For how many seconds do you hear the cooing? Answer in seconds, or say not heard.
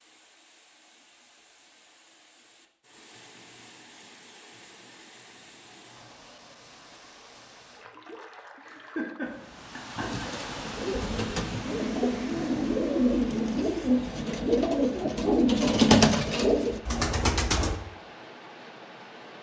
8 s.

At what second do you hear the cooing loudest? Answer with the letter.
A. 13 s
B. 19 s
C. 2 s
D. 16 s
D.